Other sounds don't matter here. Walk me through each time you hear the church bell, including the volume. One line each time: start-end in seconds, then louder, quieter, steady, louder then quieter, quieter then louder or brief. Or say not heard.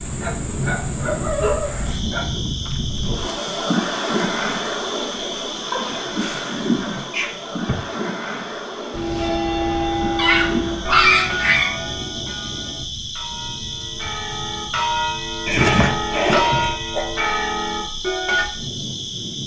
8.9-18.4 quieter then louder.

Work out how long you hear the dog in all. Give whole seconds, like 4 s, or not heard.
8 s.